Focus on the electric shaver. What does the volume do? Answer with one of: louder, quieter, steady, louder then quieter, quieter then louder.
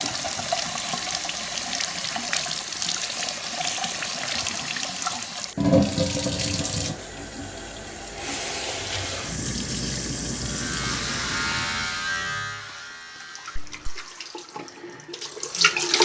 quieter.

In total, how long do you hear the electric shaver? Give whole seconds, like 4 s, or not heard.
4 s.